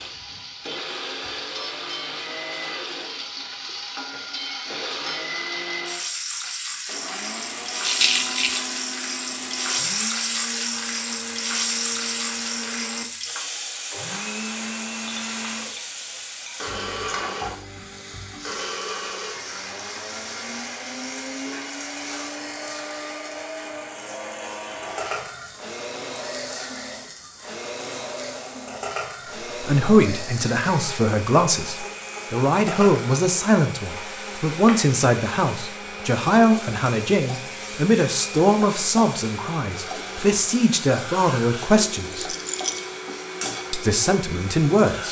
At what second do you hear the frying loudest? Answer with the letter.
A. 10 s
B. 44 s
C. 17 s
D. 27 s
A.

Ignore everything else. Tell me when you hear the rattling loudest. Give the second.
8 s.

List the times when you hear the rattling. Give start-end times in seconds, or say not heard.
7.8-8.7, 42.2-42.9.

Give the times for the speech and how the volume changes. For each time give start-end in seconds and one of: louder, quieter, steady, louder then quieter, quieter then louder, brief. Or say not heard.
29.6-42.4 steady
43.7-45.0 brief.